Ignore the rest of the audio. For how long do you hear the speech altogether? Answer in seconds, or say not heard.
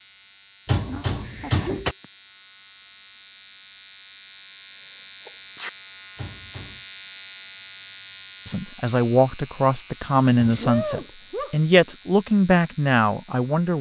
5 s.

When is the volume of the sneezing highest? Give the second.
11 s.